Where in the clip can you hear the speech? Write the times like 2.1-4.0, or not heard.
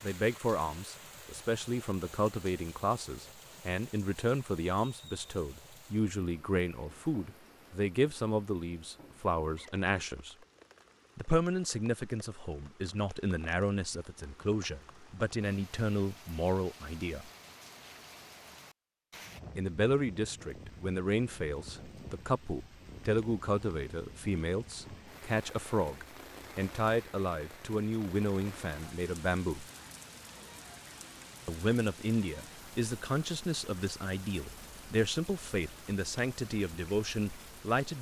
0.0-10.3, 11.2-17.3, 19.6-29.6, 31.4-37.9.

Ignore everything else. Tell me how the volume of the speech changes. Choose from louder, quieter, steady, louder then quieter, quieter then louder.
steady.